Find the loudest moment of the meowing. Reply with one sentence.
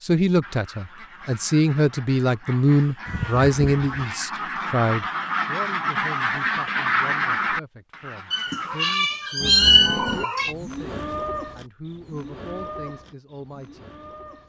The loudest moment of the meowing is at 10 seconds.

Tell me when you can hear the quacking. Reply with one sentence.
The quacking can be heard from 0.4 to 8.9 s.